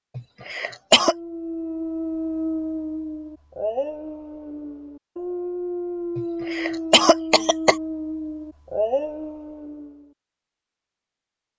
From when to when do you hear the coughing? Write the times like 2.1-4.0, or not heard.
0.1-1.1, 6.2-7.8.